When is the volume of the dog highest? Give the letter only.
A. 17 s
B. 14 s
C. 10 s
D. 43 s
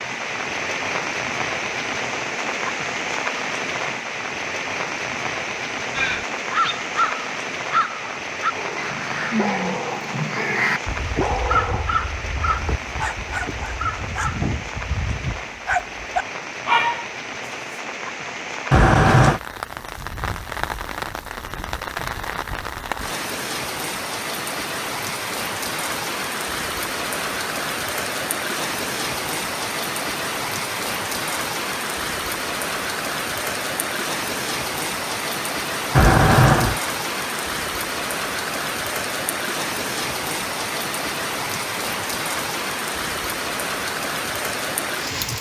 A.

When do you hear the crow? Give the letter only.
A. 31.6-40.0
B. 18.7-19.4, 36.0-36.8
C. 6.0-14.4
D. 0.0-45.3
C.